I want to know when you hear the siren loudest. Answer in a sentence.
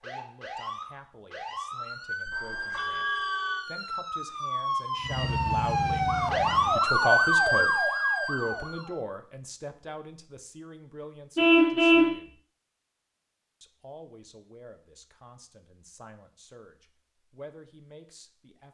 The volume of the siren peaks at 7 seconds.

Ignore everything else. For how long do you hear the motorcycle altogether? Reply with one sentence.
The motorcycle can be heard for 2 seconds in total.